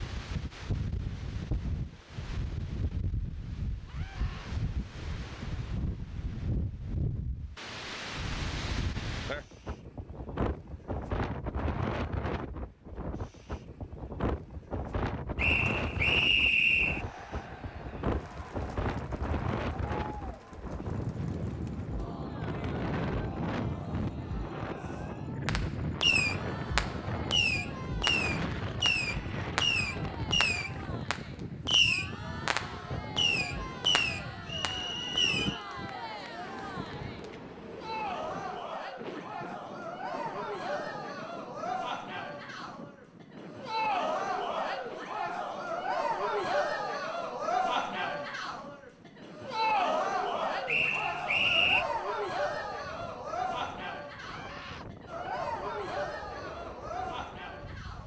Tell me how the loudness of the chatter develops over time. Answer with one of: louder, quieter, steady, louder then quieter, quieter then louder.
louder.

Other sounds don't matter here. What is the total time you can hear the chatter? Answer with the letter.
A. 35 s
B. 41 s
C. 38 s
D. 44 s
B.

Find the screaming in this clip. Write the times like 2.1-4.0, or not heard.
3.9-4.5, 54.1-54.9.